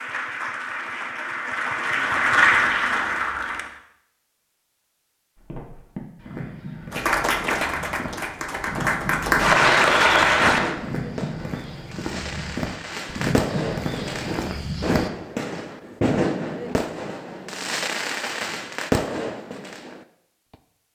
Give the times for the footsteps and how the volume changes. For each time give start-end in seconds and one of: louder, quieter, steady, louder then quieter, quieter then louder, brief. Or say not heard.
5.3-15.1 louder.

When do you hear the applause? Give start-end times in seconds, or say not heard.
0.0-3.8, 6.9-10.8.